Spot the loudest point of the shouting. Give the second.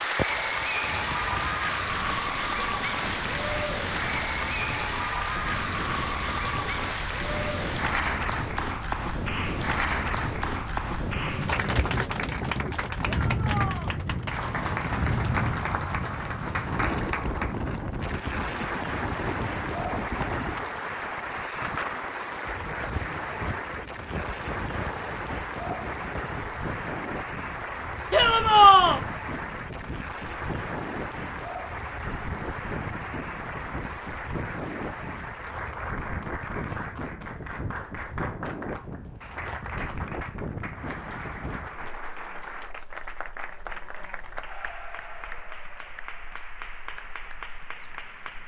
29 s.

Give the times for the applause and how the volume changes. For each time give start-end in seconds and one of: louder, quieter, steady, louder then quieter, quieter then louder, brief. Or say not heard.
0.0-48.4 quieter.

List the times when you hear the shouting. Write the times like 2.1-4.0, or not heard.
13.1-13.9, 28.1-29.0.